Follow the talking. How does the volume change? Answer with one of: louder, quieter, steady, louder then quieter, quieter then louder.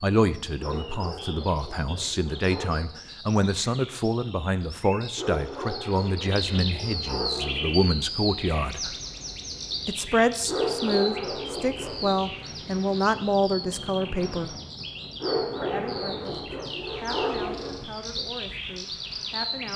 quieter.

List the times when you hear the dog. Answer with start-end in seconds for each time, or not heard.
0.6-2.9, 5.2-7.9, 10.4-12.2, 15.2-17.8.